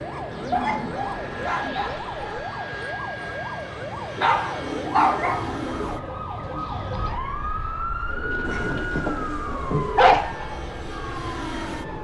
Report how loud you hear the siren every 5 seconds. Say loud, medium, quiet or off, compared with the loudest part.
loud, loud, medium.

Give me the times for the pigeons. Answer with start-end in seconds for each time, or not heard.
0.3-1.9, 4.5-6.0, 8.1-10.1.